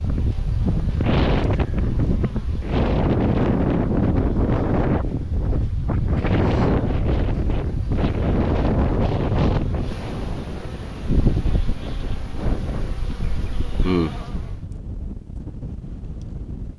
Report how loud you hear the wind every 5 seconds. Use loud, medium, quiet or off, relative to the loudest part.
loud, loud, quiet, quiet.